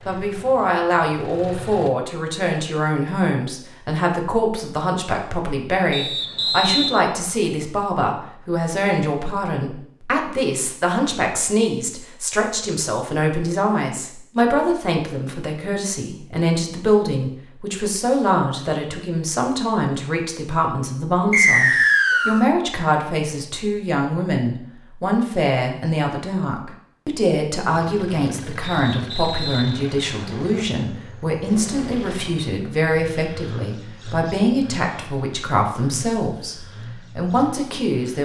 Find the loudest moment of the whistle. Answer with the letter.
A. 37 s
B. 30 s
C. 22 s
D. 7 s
C.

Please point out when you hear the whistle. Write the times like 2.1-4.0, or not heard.
5.9-7.0, 21.3-22.4, 28.6-30.6.